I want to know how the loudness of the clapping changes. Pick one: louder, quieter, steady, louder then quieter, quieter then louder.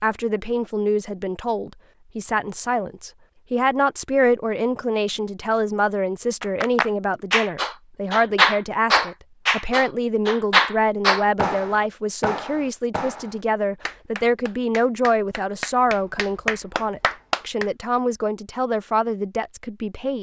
quieter then louder.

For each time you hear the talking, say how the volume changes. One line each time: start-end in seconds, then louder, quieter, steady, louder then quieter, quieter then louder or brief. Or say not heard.
0.0-20.1 steady.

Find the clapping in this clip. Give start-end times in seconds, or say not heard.
6.4-17.6.